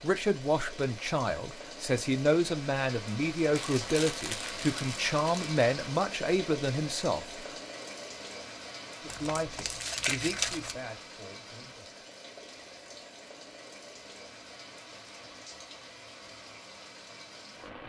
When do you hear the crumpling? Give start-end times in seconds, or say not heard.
3.5-5.5, 9.1-10.8.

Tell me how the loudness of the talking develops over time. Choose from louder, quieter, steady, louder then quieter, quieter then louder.
quieter.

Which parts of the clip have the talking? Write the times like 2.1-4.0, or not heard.
0.0-7.4, 9.0-12.0.